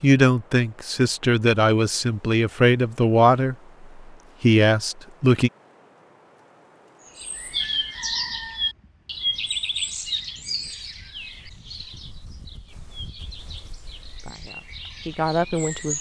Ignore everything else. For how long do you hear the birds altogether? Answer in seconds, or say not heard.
9 s.